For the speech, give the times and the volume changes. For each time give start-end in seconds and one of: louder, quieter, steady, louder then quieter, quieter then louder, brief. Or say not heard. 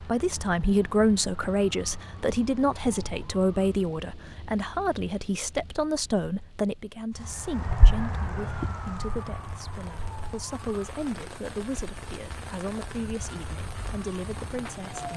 0.1-15.1 quieter.